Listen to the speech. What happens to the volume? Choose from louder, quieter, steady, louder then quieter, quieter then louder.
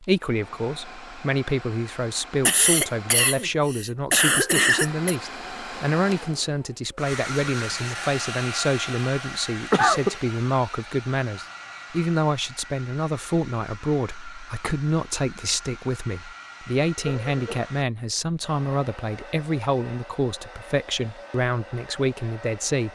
steady.